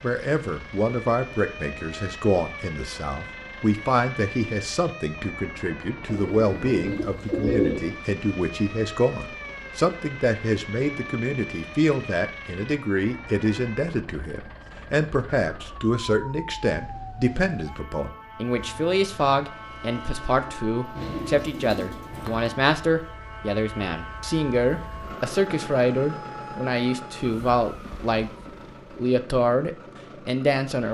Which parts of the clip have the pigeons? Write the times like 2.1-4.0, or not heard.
6.0-8.0, 20.9-22.6.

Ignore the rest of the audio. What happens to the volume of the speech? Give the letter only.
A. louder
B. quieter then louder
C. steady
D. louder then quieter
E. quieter
C.